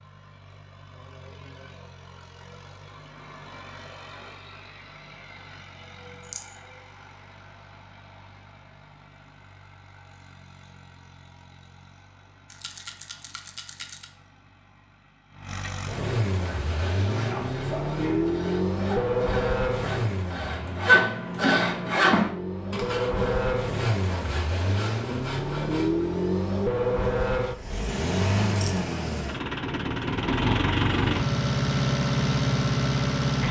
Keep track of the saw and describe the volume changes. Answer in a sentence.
The volume of the saw goes up, then down.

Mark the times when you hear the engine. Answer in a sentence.
You can hear the engine from 0.0 to 33.4 s.